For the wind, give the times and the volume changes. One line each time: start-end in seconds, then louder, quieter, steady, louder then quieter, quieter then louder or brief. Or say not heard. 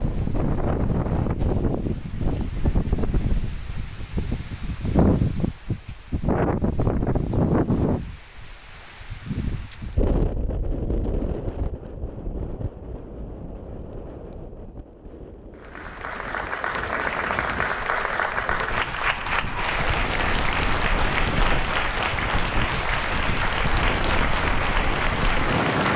0.0-25.9 quieter then louder.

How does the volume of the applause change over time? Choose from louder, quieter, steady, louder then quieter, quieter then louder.
steady.